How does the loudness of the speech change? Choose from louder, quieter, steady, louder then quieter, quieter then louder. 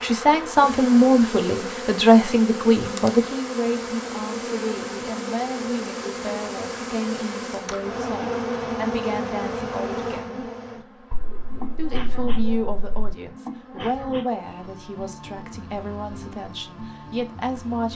quieter.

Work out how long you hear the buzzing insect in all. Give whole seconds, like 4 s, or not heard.
18 s.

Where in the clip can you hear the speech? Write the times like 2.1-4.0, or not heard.
0.0-10.5, 11.8-17.9.